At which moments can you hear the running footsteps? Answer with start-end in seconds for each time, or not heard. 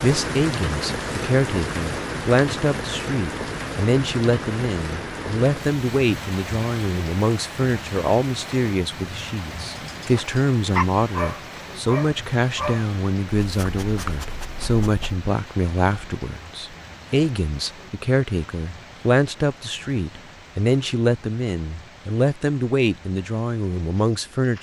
not heard.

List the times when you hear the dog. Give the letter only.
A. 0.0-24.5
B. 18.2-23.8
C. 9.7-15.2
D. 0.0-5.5
C.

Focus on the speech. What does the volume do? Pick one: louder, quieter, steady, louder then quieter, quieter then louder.
steady.